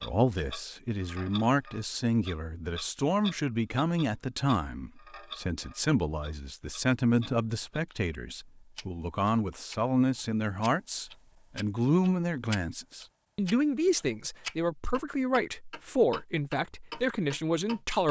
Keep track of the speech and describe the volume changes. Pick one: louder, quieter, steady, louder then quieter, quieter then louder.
steady.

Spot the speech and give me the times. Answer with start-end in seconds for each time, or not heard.
0.0-18.0.